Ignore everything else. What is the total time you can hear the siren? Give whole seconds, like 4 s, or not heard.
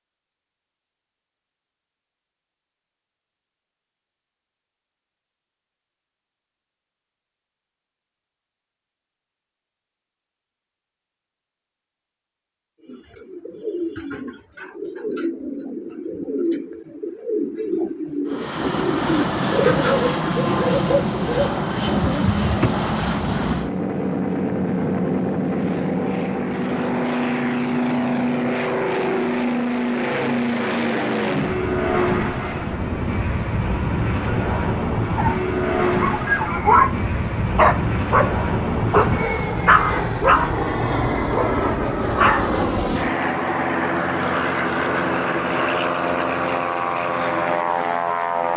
not heard.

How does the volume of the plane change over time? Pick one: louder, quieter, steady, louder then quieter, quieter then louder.
steady.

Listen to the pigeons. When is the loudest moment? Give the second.
20 s.